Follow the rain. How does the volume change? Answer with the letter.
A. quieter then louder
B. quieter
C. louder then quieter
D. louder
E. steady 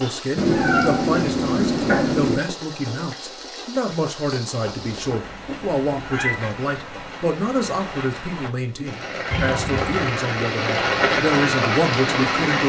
D.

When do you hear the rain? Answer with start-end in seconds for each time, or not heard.
0.0-12.6.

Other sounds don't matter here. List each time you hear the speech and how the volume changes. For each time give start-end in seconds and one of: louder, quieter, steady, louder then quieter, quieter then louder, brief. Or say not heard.
0.0-12.6 steady.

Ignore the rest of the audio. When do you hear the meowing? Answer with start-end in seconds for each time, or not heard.
0.3-2.4, 4.7-6.4, 9.3-10.1.